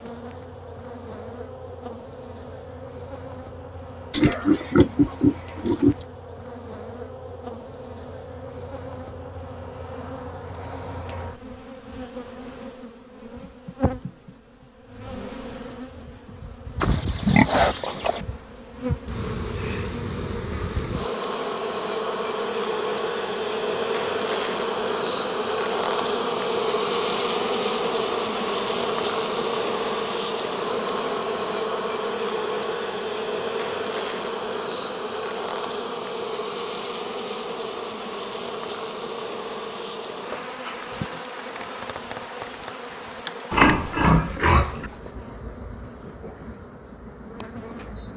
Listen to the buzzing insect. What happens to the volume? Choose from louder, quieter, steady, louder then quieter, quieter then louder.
louder then quieter.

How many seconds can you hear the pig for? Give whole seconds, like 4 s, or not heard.
5 s.